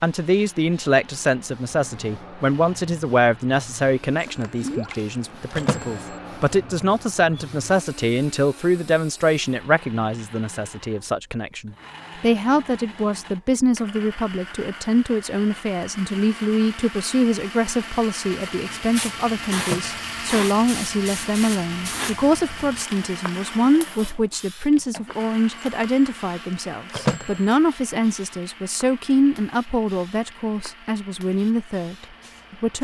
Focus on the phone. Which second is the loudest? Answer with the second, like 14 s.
27 s.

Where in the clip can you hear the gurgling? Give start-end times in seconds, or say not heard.
4.6-5.0.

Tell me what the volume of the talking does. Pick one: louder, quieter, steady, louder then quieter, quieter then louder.
steady.